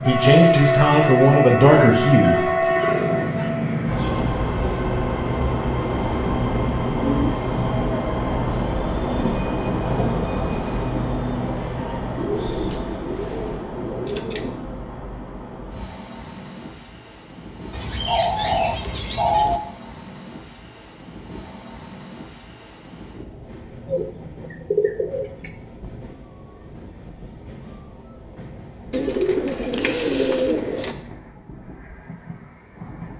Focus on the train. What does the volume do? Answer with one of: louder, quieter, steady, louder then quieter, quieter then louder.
quieter.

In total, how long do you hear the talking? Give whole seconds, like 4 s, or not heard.
3 s.